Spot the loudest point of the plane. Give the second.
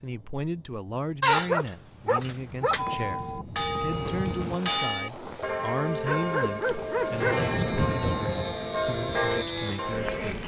8 s.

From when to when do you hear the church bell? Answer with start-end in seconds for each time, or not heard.
2.8-10.3.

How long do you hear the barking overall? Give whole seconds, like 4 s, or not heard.
3 s.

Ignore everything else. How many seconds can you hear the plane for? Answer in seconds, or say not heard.
8 s.